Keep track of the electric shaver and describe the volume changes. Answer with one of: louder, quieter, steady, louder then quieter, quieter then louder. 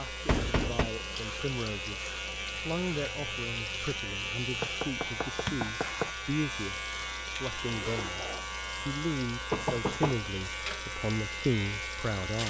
steady.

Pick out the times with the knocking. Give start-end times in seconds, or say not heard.
0.2-0.9, 4.6-6.1, 9.5-10.2.